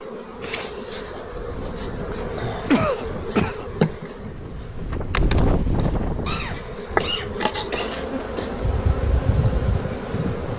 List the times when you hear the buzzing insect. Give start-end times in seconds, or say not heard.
0.0-10.5.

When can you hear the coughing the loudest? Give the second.
3 s.